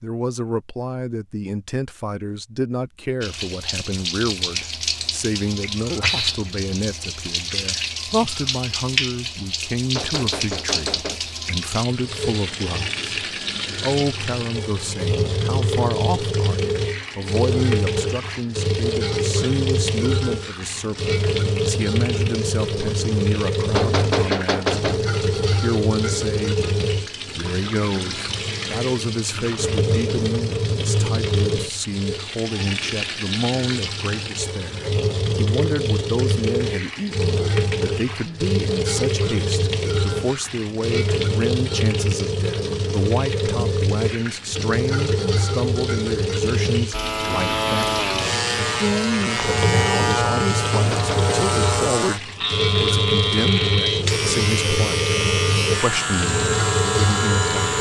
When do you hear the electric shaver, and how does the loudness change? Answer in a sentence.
The electric shaver can be heard from 46.9 to 57.7 s, at a steady volume.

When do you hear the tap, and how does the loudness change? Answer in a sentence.
The tap can be heard from 3.2 to 57.7 s, at a steady volume.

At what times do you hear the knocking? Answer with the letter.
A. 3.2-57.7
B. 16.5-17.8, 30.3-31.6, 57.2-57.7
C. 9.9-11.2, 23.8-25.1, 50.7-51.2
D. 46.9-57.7
C.